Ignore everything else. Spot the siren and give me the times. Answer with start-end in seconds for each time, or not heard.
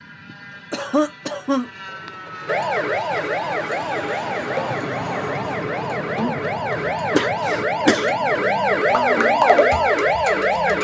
2.5-10.7.